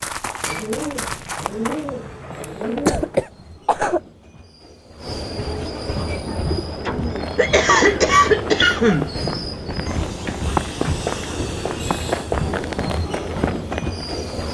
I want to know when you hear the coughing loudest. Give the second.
8 s.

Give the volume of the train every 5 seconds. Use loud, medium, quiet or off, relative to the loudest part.
quiet, loud, loud.